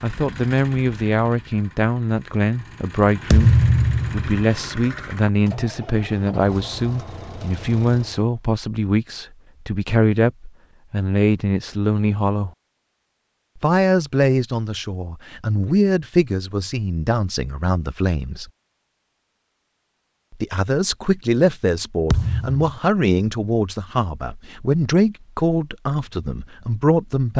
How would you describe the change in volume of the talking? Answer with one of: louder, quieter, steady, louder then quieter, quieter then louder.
steady.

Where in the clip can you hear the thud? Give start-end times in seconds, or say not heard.
3.3-4.3, 22.1-22.6.